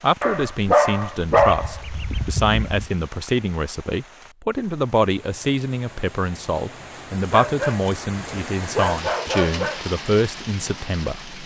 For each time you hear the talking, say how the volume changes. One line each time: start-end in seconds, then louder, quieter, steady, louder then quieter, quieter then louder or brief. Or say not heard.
0.0-11.3 steady.